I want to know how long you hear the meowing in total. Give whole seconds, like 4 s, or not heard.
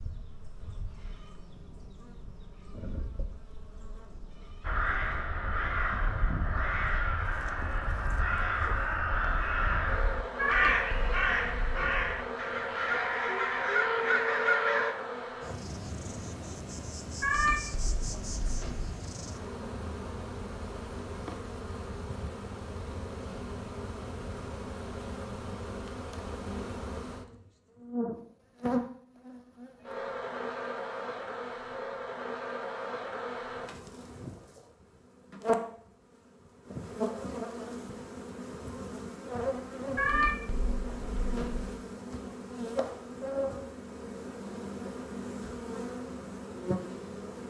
5 s.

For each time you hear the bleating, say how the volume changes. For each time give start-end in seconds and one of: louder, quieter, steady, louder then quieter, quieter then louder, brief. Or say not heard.
not heard.